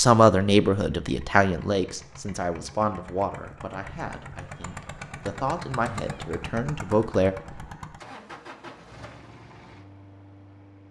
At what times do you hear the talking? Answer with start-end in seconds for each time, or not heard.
0.0-7.3.